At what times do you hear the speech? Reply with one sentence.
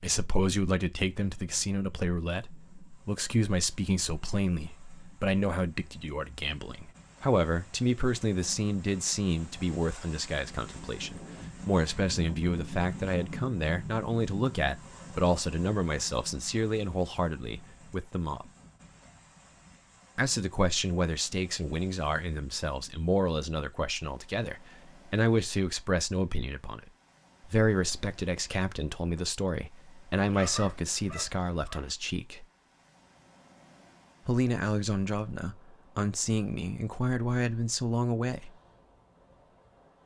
The speech can be heard from 0.0 to 18.4 s, from 20.1 to 26.8 s, from 27.4 to 32.5 s and from 34.2 to 38.5 s.